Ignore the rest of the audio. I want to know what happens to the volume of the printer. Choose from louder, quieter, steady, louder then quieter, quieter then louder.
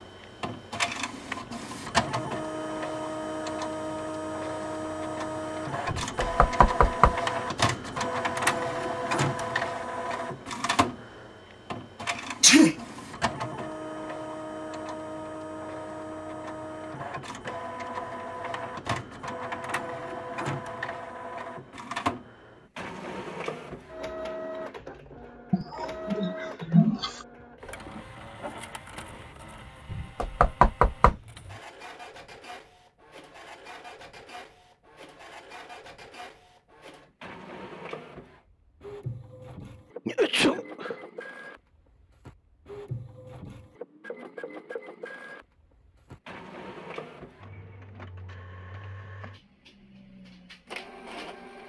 quieter.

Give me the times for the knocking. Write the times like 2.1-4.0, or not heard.
5.8-7.2, 29.9-31.1.